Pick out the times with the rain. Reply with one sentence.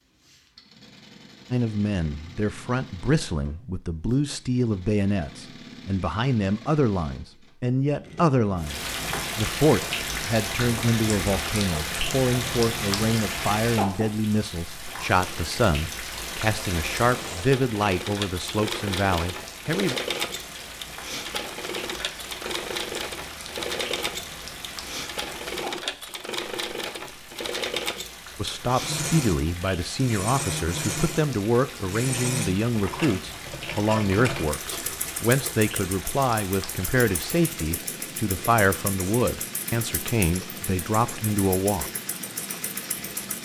The rain can be heard from 8.6 to 43.4 s.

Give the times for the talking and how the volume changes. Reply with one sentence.
The talking can be heard from 1.5 to 19.9 s, at a steady volume; and from 28.4 to 41.9 s, at a steady volume.